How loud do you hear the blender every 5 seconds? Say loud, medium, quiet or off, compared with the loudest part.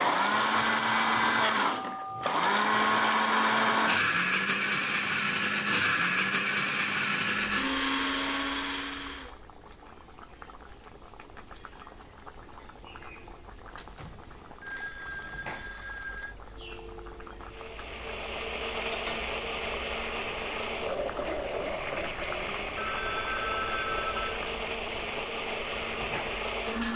loud, loud, off, medium, medium, medium.